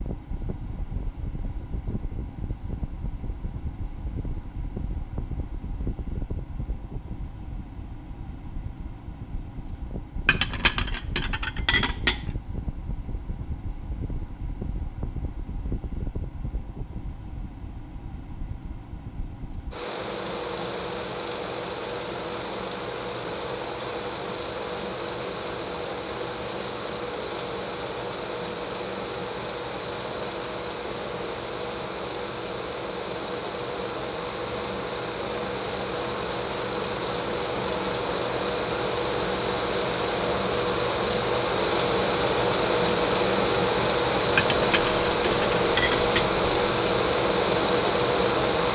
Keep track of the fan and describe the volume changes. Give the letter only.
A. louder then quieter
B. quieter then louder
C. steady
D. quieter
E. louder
E.